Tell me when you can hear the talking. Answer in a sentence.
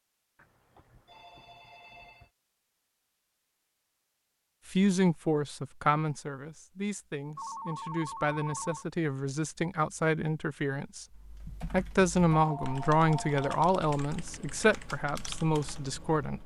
You can hear the talking from 4.7 to 16.4 s.